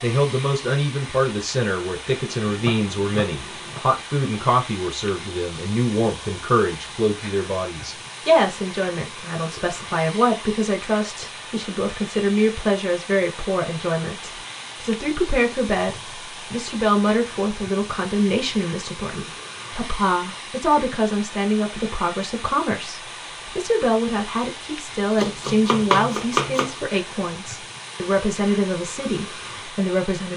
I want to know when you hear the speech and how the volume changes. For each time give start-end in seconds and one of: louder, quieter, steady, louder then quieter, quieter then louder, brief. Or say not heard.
0.0-30.3 steady.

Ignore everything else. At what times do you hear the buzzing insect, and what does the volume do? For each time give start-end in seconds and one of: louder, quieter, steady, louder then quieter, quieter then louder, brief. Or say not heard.
not heard.